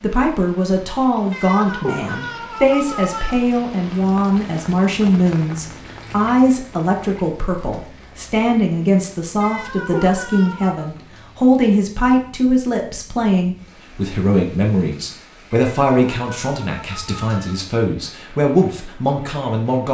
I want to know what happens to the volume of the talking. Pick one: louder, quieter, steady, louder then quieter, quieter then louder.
steady.